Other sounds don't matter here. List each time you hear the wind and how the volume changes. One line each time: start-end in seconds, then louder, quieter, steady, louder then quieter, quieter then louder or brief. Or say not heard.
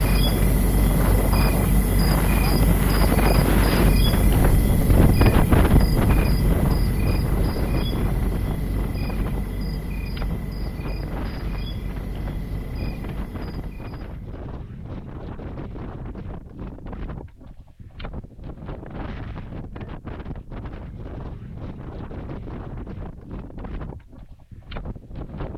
0.0-25.5 quieter.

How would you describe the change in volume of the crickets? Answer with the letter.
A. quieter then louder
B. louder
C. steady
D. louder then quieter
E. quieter
E.